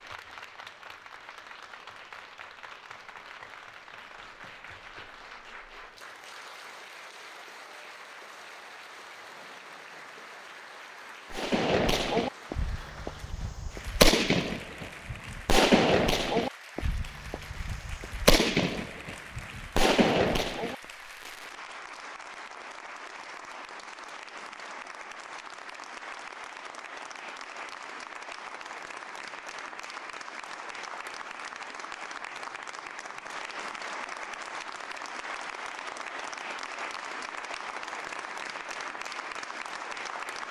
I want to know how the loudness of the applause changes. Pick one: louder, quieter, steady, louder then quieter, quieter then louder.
louder.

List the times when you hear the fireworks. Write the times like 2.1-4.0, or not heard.
11.3-21.4.